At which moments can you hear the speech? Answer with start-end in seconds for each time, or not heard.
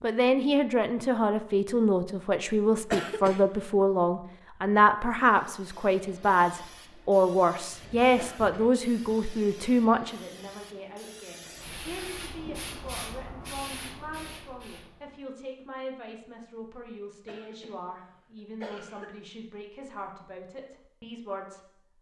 0.0-21.9.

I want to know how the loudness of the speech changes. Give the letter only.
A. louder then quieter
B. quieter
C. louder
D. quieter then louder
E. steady
B.